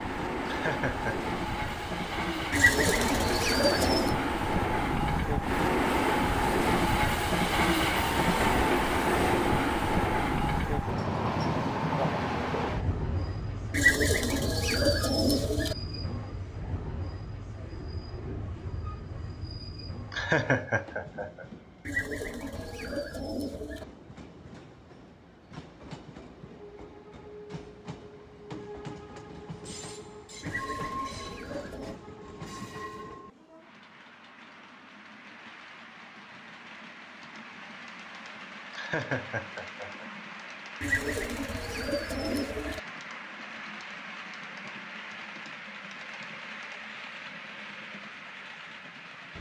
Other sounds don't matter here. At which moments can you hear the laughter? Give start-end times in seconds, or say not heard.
0.5-1.2, 20.1-21.4, 38.7-40.0.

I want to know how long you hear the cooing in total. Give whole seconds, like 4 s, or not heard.
9 s.